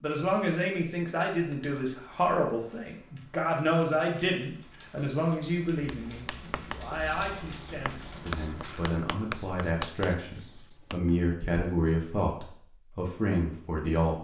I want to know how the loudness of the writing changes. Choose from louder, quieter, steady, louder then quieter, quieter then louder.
louder then quieter.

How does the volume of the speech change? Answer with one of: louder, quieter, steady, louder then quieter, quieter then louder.
quieter then louder.